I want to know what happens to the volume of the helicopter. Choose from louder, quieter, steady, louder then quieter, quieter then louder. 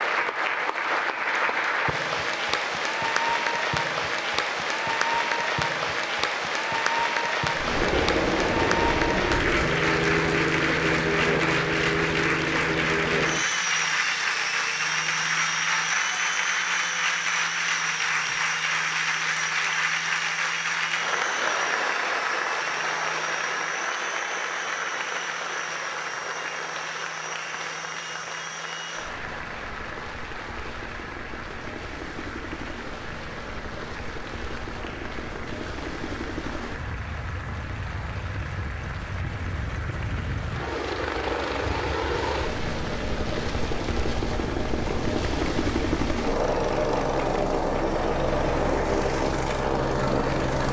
quieter then louder.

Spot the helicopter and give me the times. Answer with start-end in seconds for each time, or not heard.
7.5-50.6.